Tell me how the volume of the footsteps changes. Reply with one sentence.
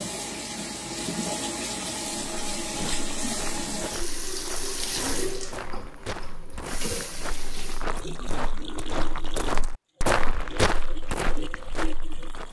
The loudness of the footsteps goes up.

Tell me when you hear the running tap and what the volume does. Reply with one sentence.
The running tap can be heard from 0.0 to 12.4 s, getting quieter.